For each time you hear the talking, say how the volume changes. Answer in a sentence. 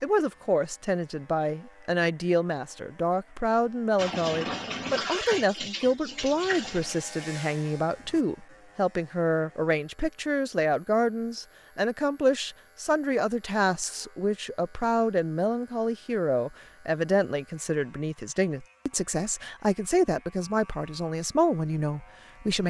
You can hear the talking from 0.0 to 22.6 s, at a steady volume.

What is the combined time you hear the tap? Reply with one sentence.
The tap can be heard for 4 seconds in total.